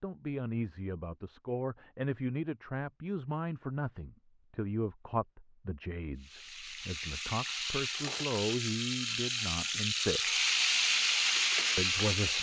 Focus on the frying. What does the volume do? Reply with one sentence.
The loudness of the frying goes up.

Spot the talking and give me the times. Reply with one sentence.
You can hear the talking from 0.0 to 10.4 s and from 11.8 to 12.3 s.